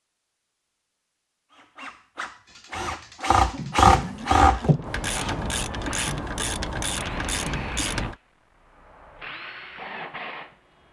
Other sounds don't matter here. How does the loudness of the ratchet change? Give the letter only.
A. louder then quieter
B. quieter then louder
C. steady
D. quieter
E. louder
E.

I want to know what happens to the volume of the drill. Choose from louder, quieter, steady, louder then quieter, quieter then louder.
louder then quieter.